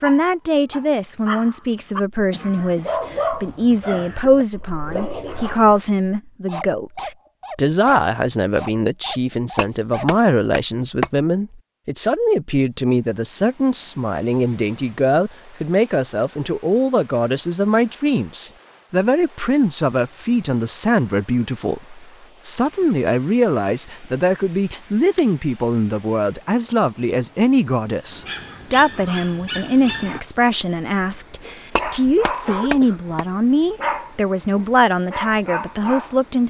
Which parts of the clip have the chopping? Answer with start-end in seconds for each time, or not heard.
9.6-11.1, 31.8-33.2.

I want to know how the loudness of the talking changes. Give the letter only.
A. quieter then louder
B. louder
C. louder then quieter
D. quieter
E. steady
E.